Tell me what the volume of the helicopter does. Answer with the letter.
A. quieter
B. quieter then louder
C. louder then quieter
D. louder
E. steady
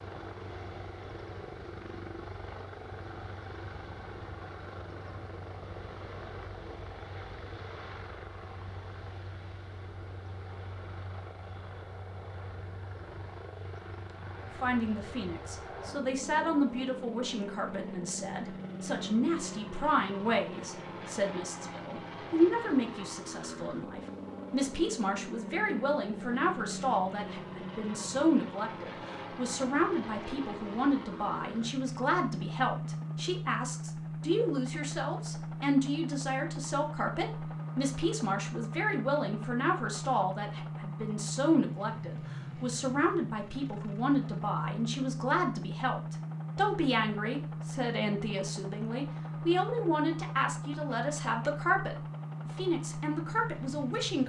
D.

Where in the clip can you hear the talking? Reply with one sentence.
You can hear the talking from 14.6 to 54.2 s.